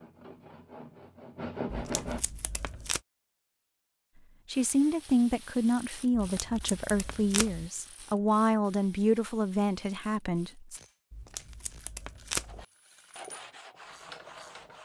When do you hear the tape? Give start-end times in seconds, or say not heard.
1.7-3.0, 6.2-7.7, 11.1-12.7.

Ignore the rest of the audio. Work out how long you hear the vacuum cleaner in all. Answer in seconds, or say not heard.
not heard.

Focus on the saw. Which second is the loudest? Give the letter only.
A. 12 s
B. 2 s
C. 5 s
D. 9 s
B.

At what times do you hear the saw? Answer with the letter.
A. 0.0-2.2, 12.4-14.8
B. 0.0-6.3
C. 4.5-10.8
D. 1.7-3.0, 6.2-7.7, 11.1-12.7
A.